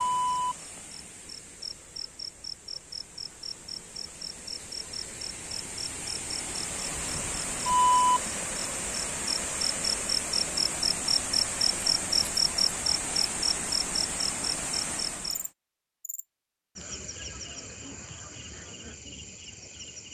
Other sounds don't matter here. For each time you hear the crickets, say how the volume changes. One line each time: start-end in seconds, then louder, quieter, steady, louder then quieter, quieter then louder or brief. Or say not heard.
0.0-20.0 louder then quieter.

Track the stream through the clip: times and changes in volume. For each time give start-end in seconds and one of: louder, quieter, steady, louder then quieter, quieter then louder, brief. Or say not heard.
0.0-15.5 louder.